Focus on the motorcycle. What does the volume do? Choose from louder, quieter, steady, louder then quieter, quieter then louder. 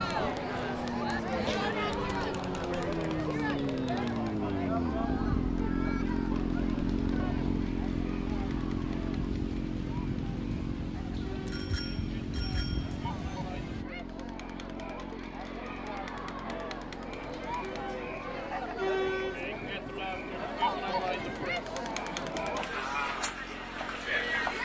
quieter.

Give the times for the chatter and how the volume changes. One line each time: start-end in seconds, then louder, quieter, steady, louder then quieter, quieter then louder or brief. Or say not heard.
0.0-24.6 quieter then louder.